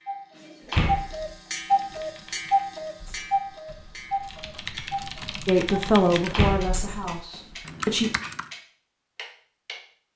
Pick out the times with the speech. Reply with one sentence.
The speech can be heard from 5.5 to 8.1 s.